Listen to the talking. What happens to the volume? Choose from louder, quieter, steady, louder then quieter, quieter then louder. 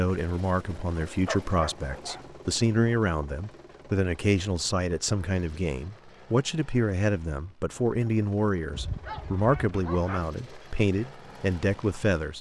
steady.